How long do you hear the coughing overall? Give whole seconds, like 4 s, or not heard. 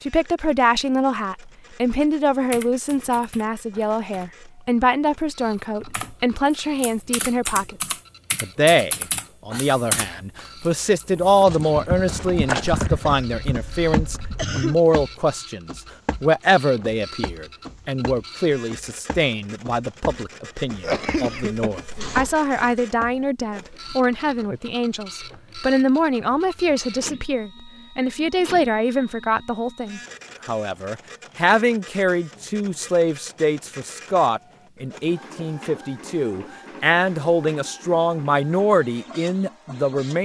3 s.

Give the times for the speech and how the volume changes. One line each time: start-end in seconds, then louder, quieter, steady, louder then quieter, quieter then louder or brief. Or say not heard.
0.0-40.1 steady.